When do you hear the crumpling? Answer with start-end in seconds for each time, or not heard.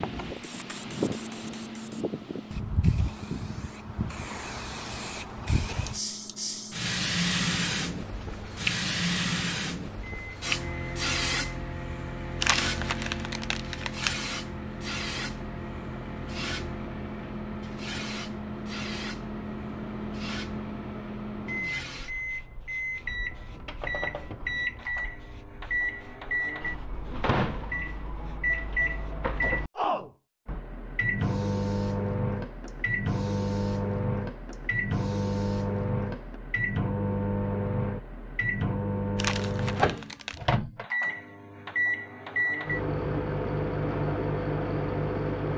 12.4-14.2, 39.1-40.4.